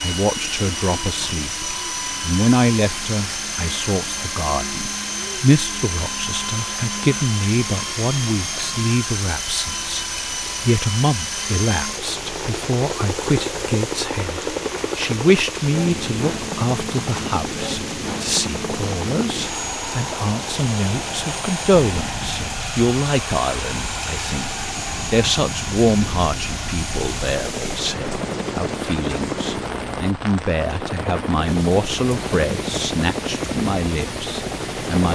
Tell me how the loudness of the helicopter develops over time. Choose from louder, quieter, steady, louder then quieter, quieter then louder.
steady.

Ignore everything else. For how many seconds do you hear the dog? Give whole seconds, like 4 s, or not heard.
not heard.